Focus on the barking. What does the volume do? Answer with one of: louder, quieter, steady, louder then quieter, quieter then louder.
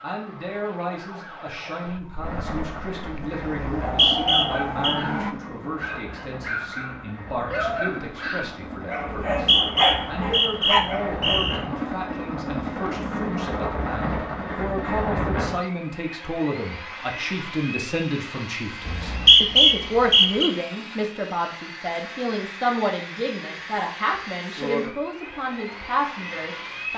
louder.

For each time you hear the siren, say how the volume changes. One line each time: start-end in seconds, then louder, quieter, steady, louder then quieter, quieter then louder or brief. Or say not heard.
0.0-5.3 quieter then louder.